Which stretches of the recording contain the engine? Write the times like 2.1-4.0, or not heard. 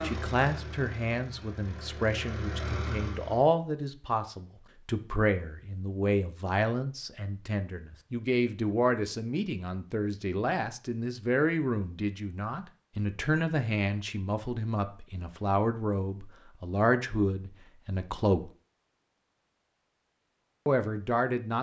0.0-3.5.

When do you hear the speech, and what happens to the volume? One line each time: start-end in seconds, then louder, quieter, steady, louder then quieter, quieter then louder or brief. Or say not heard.
0.0-18.4 steady
20.6-21.5 brief.